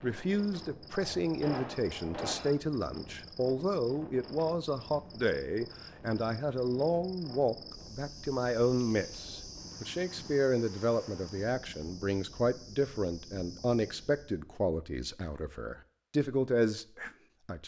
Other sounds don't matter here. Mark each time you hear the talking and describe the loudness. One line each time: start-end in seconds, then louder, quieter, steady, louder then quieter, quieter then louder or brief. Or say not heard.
0.0-17.6 steady.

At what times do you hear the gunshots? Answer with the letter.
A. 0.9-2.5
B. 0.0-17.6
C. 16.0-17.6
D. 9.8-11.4
A.